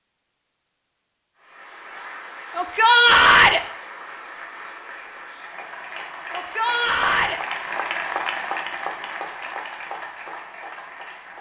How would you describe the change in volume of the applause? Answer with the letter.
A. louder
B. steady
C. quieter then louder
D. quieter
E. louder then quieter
E.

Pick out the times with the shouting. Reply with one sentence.
You can hear the shouting from 2.5 to 3.6 s and from 6.3 to 7.4 s.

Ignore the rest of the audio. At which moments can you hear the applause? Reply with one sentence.
The applause can be heard from 1.4 to 11.3 s.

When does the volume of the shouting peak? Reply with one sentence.
The volume of the shouting peaks at 3 seconds.